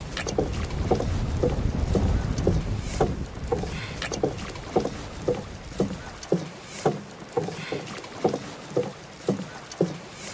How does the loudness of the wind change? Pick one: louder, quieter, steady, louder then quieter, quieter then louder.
quieter.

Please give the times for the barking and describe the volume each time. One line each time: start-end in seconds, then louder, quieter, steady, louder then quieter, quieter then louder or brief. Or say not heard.
not heard.